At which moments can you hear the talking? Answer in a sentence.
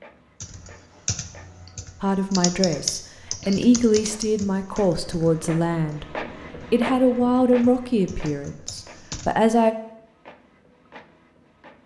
You can hear the talking from 2.0 to 6.0 s and from 6.7 to 9.8 s.